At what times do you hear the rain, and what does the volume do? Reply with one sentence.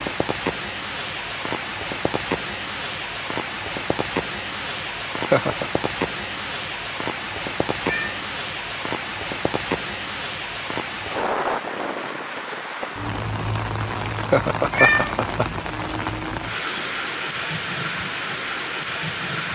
The rain can be heard from 0.0 to 19.5 s, at a steady volume.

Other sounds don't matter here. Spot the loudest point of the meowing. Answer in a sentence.
The loudest moment of the meowing is at 15 seconds.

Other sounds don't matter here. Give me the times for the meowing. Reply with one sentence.
The meowing can be heard from 7.8 to 8.2 s and from 14.7 to 15.2 s.